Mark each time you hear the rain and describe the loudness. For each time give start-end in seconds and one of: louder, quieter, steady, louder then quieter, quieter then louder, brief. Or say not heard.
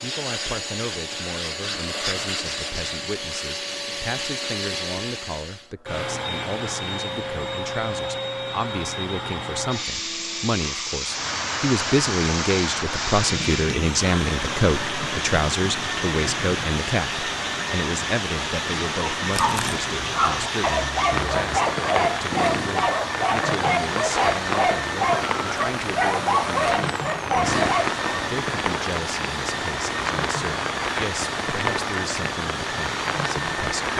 11.0-33.9 steady.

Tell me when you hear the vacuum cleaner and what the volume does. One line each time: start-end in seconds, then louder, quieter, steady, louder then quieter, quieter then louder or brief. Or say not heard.
0.0-33.9 steady.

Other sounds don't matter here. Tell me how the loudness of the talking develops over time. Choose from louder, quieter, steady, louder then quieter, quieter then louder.
louder then quieter.